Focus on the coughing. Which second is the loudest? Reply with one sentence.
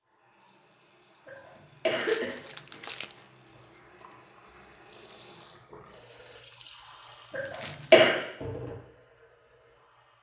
The loudest moment of the coughing is at 8 seconds.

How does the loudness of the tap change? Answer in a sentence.
The loudness of the tap goes up.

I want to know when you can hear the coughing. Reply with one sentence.
The coughing can be heard from 1.2 to 2.8 s and from 7.3 to 8.2 s.